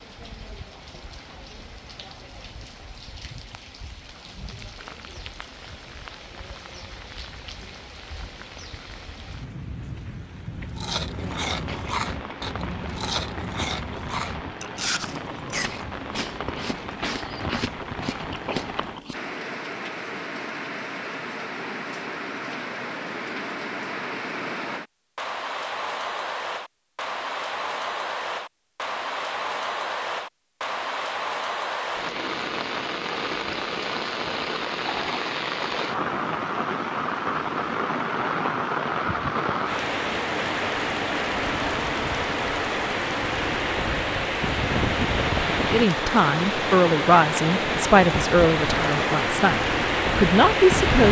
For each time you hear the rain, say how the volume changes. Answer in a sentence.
You can hear the rain from 0.0 to 51.0 s, getting louder.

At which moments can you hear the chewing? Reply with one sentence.
You can hear the chewing from 10.5 to 19.3 s.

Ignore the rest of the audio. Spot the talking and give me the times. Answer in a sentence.
You can hear the talking from 45.7 to 51.0 s.